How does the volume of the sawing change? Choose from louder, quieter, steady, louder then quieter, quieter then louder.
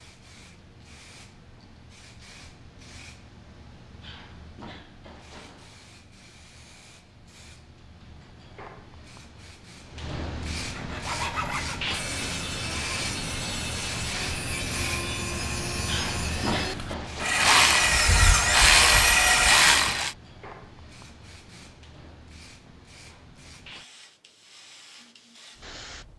louder.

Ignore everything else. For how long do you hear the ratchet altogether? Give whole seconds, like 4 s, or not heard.
3 s.